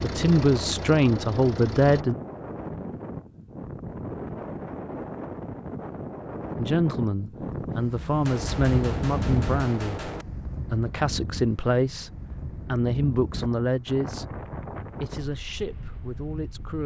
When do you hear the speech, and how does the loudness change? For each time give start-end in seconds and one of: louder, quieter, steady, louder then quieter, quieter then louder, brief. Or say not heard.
0.0-2.1 brief
6.5-16.8 quieter.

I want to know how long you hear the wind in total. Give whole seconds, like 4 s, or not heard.
17 s.